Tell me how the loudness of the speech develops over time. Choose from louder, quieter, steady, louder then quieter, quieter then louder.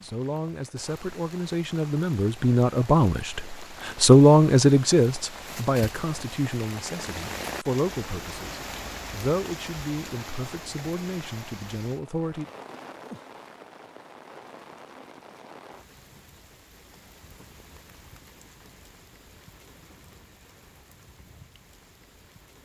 louder then quieter.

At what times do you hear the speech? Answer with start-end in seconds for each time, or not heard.
0.0-12.4.